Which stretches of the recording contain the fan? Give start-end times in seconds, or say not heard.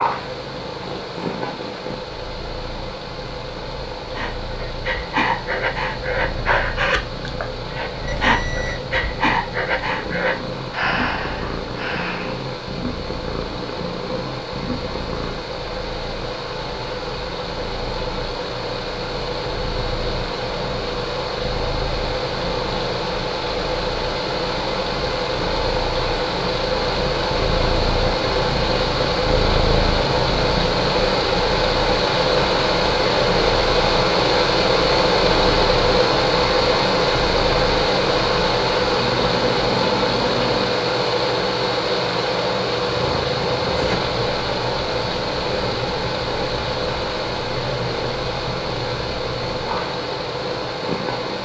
0.0-51.4.